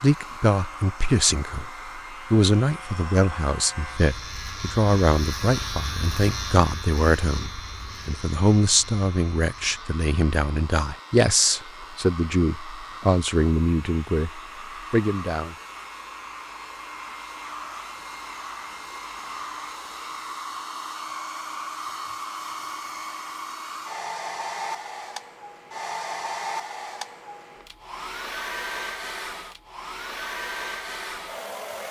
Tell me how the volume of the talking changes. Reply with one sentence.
The volume of the talking stays about the same.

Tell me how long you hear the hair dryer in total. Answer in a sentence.
The hair dryer can be heard for 32 seconds in total.